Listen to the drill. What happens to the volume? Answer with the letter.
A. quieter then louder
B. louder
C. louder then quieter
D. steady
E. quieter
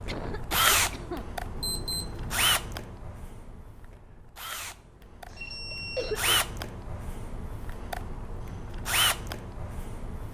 A.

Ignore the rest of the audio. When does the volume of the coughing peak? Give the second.
6 s.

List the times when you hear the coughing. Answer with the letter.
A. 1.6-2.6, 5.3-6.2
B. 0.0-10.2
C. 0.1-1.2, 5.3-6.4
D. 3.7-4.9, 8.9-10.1
C.